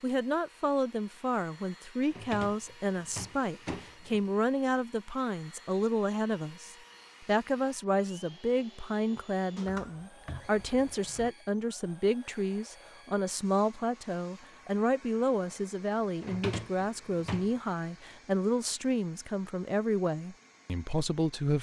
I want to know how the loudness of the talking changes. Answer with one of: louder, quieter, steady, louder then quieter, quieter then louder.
steady.